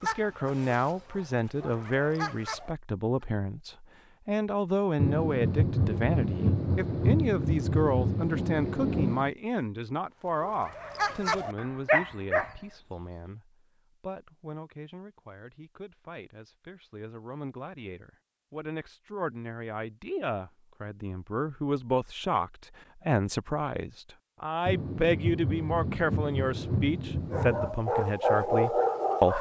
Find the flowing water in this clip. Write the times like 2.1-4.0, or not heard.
not heard.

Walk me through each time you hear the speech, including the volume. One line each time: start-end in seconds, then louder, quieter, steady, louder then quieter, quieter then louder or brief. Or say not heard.
0.0-29.3 quieter then louder.